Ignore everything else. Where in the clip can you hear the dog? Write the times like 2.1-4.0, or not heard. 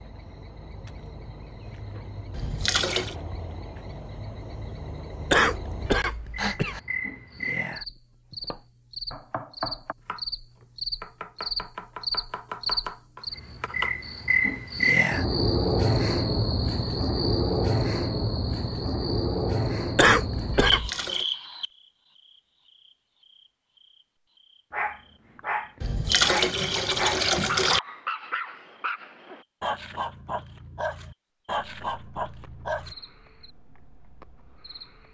24.7-33.0.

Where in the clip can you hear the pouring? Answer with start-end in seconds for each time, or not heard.
2.3-3.1, 20.6-21.2, 25.8-27.8.